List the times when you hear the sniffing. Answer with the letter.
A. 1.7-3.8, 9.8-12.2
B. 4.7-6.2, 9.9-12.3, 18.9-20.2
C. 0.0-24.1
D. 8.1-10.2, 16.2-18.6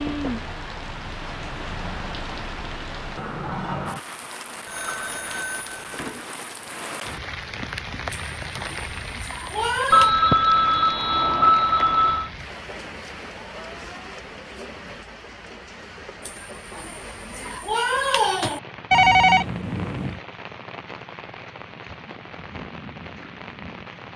D.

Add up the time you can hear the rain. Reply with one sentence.
You can hear the rain for 24 seconds altogether.